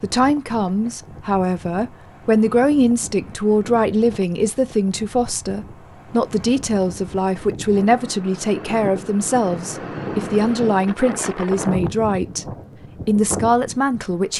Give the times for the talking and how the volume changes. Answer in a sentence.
You can hear the talking from 0.0 to 12.4 s, at a steady volume; and briefly from 13.1 to 14.3 s.